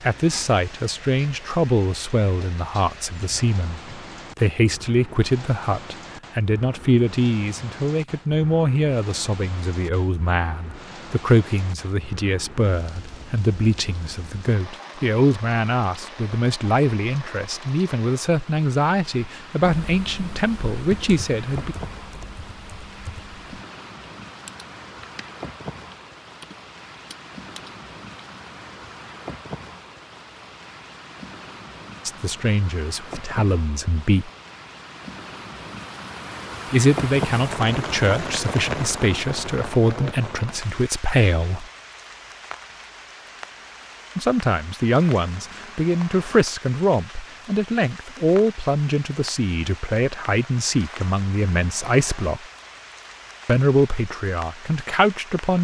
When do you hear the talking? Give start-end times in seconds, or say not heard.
0.0-21.8, 32.0-34.3, 36.7-41.6, 44.1-52.4, 53.5-55.5.